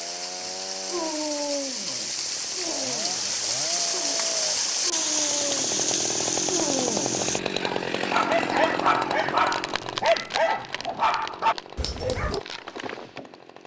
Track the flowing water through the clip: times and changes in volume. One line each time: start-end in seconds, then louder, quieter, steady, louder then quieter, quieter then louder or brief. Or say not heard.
0.0-7.4 louder.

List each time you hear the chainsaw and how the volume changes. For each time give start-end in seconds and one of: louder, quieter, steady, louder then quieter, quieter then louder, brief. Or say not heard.
0.0-13.6 louder then quieter.